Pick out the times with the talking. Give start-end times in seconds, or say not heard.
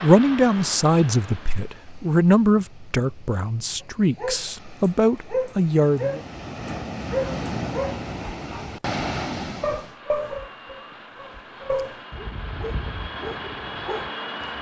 0.0-6.2.